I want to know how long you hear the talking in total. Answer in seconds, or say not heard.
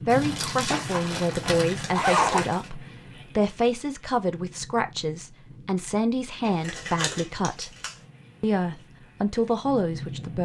10 s.